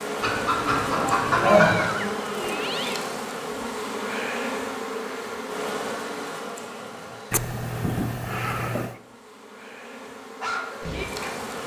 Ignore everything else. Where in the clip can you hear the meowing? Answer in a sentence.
You can hear the meowing from 1.4 to 3.0 s and from 7.3 to 8.9 s.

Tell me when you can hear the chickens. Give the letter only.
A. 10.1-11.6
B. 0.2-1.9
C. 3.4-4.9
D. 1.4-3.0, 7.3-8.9
B.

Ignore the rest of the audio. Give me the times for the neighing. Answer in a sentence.
You can't hear the neighing here.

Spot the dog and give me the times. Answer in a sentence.
You can hear the dog from 10.1 to 11.6 s.